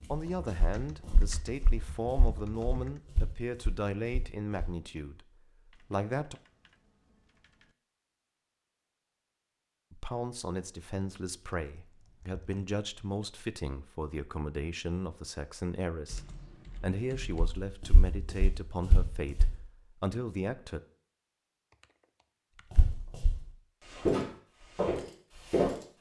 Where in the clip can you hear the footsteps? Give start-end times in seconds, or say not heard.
0.1-4.8, 17.6-19.6, 22.7-25.8.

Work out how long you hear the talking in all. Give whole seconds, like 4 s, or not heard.
17 s.